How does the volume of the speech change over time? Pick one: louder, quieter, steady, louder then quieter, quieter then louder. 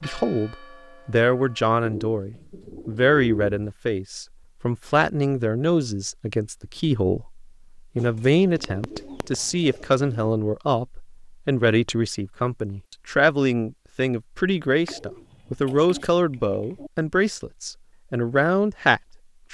steady.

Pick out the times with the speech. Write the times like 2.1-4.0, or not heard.
0.0-19.5.